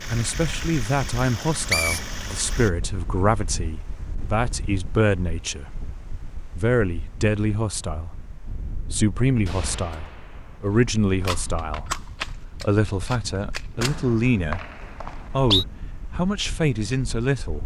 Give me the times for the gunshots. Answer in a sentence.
You can hear the gunshots from 9.4 to 14.1 s.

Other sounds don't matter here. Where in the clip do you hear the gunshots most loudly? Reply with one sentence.
The loudest moment of the gunshots is at 12 seconds.